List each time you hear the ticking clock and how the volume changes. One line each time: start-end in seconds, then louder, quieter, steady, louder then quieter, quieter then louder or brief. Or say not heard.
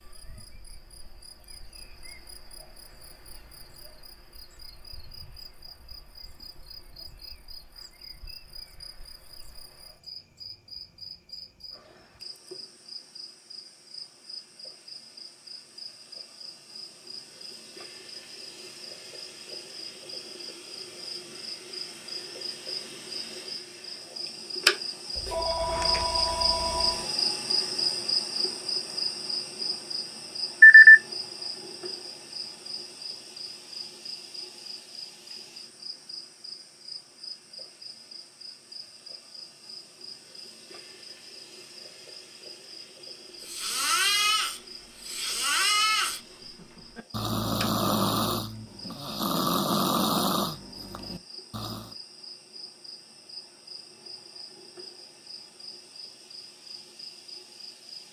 not heard.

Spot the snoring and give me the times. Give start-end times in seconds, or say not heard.
43.4-51.9.